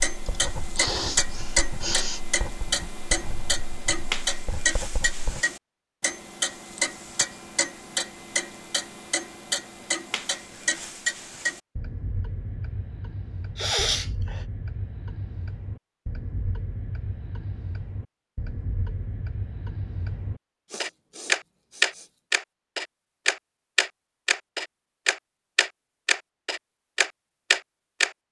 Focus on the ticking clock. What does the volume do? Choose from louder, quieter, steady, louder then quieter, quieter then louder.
quieter then louder.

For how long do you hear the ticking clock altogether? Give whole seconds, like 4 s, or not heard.
28 s.